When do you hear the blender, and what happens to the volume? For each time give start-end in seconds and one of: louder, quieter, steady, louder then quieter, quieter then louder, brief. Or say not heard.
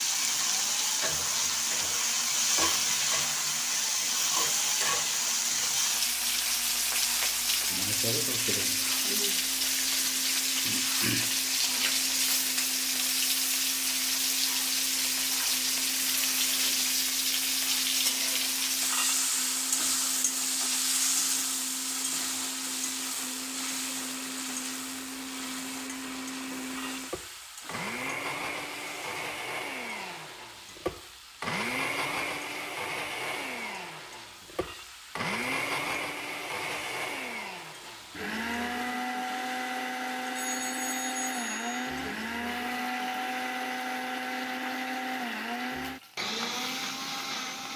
0.0-47.7 louder.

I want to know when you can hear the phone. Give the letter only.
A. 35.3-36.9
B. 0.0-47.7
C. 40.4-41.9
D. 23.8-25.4
C.